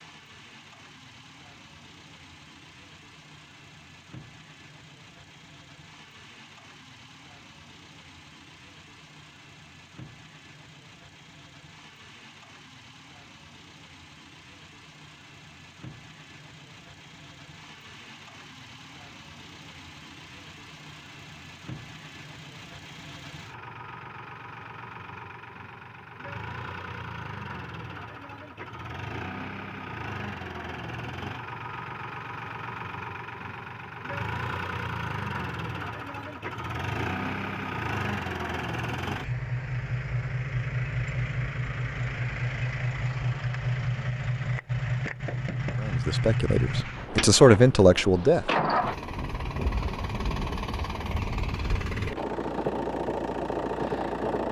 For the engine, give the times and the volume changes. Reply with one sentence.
The engine can be heard from 0.0 to 54.4 s, getting louder.